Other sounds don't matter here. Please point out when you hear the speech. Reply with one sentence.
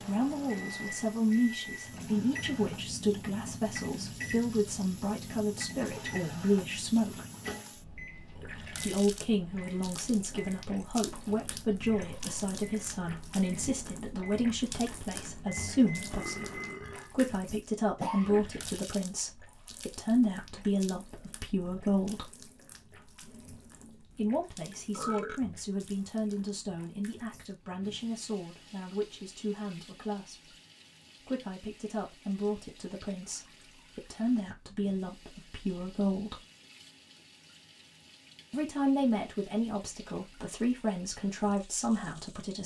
You can hear the speech from 0.0 to 7.2 s, from 8.8 to 22.3 s, from 24.1 to 30.6 s, from 31.2 to 36.5 s and from 38.5 to 42.6 s.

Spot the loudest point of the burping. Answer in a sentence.
The volume of the burping peaks at 25 seconds.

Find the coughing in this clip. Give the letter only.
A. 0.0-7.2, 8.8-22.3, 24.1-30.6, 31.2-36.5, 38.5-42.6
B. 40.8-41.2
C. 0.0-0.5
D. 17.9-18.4
D.